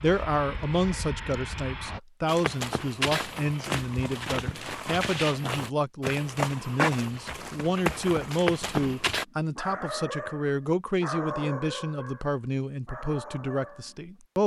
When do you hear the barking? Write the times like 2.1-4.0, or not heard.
8.8-14.0.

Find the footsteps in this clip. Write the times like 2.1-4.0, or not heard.
2.2-9.2.